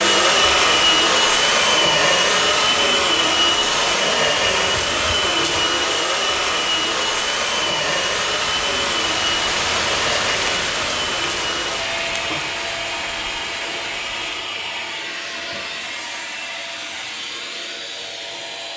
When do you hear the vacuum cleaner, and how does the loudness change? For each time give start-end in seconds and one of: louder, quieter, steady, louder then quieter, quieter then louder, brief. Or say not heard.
0.0-18.7 quieter.